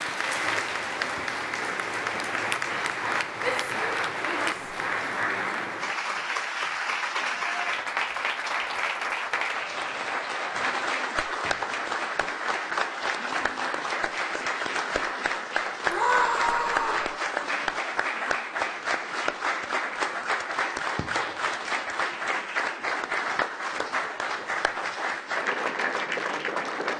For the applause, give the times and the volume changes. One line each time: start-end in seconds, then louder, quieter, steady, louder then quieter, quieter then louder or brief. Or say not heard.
0.0-26.9 steady.